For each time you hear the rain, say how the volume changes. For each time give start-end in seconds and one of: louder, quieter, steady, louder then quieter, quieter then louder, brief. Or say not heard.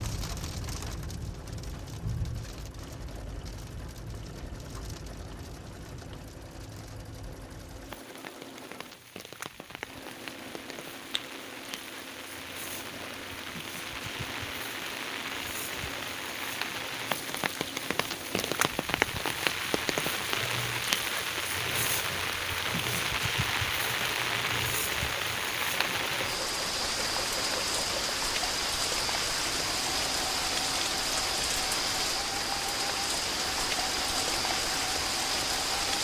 0.0-36.0 louder.